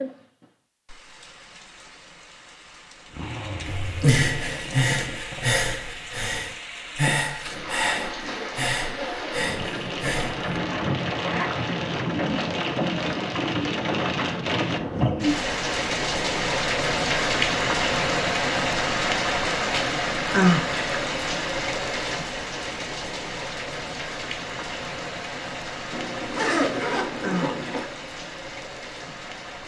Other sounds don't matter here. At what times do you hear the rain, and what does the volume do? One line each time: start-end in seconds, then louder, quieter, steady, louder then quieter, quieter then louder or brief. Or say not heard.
0.0-29.6 louder then quieter.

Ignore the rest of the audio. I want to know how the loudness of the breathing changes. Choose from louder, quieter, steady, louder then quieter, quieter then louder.
quieter.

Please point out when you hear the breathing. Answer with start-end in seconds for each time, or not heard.
3.8-10.4.